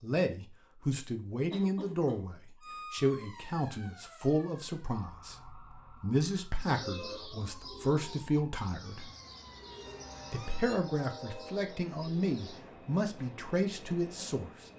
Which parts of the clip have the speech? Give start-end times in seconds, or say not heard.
0.0-9.1, 10.3-14.5.